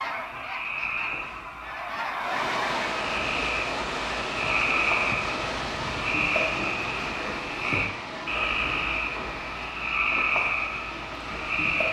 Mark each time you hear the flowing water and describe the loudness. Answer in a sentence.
You can hear the flowing water from 2.1 to 11.8 s, getting quieter.